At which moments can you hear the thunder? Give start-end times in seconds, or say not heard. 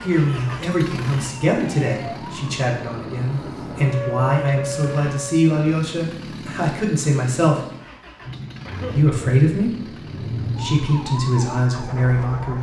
8.2-10.9.